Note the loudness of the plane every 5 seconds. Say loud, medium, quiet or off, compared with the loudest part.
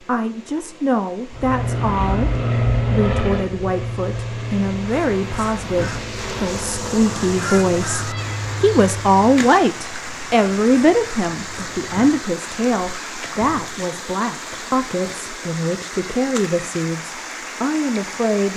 loud, medium, off, off.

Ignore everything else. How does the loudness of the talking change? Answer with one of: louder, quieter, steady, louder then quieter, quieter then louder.
louder then quieter.